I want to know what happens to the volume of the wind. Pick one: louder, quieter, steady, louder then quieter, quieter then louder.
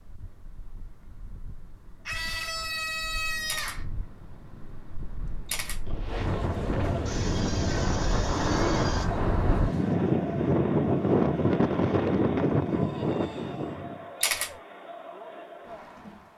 louder.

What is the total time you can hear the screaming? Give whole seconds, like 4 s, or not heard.
5 s.